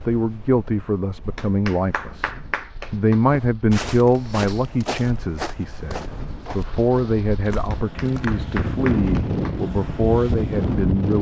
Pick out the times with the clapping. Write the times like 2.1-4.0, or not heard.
1.4-3.2, 7.7-9.6.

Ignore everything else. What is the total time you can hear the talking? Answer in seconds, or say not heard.
11 s.